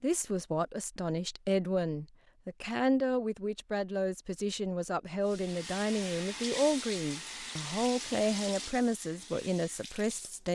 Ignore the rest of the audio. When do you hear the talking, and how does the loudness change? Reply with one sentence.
The talking can be heard from 0.0 to 10.5 s, at a steady volume.